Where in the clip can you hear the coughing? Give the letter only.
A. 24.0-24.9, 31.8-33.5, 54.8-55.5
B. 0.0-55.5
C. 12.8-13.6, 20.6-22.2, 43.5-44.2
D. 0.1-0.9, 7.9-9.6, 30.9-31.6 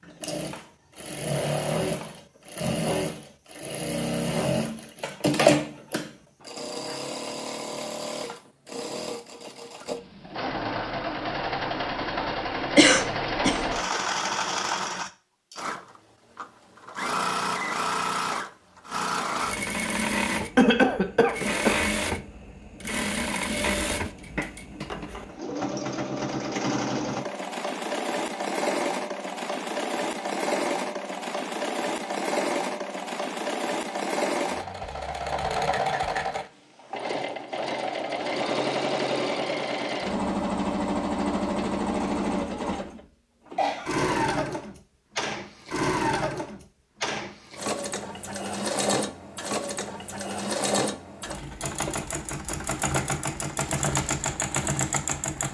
C.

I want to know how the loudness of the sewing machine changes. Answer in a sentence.
The volume of the sewing machine stays about the same.